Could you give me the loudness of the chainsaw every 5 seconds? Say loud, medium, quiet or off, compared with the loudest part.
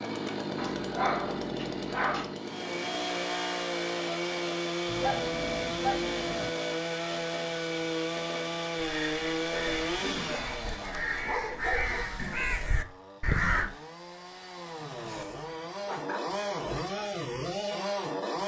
loud, loud, medium, loud.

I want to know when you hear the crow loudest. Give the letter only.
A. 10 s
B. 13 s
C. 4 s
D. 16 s
B.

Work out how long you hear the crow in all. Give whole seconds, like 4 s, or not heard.
5 s.